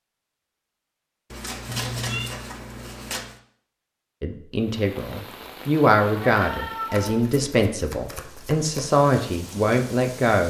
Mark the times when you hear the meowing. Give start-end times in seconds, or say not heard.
1.6-2.4, 6.3-7.2.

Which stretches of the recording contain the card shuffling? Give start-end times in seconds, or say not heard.
1.3-3.4, 6.9-8.9.